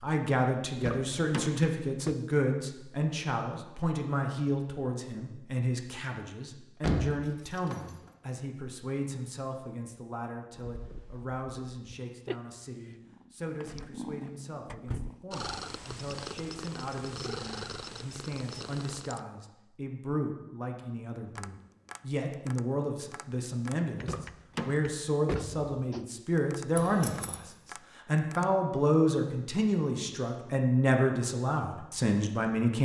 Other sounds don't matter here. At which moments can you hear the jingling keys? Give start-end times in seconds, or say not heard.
6.8-7.8, 26.8-27.4.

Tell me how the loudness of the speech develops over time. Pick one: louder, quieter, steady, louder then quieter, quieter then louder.
quieter then louder.